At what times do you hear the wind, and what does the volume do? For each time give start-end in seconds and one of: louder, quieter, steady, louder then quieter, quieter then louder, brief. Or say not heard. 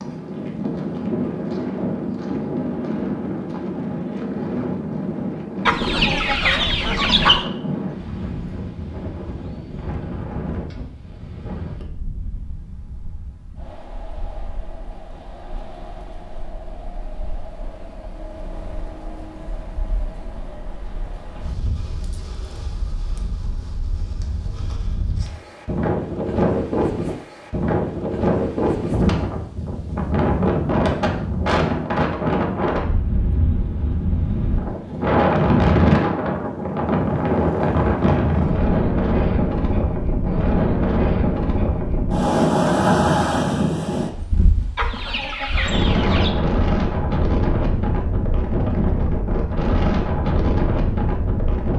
0.0-51.7 quieter then louder.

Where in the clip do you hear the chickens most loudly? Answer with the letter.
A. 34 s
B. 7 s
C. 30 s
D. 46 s
B.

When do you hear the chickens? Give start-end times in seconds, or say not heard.
5.7-7.5, 44.8-46.4.